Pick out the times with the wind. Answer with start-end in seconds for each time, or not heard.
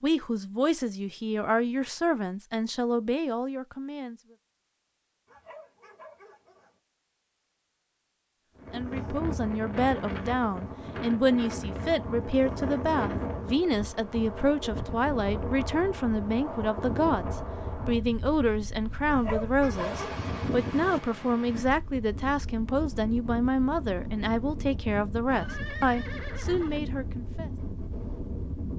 8.6-28.7.